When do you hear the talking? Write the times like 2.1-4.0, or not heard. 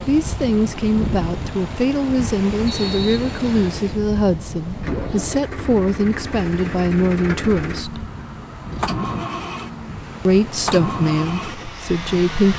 0.1-8.1, 10.2-12.5.